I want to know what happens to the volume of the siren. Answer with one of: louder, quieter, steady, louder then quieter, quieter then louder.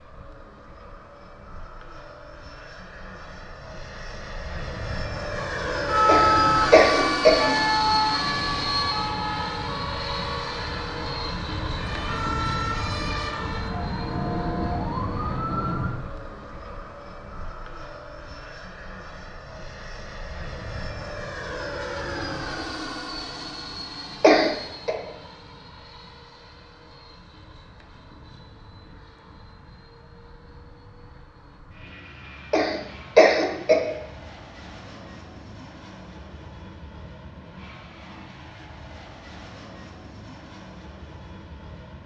quieter then louder.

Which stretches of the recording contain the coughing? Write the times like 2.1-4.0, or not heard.
6.0-7.5, 24.2-24.9, 32.5-33.8.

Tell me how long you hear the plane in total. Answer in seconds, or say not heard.
42 s.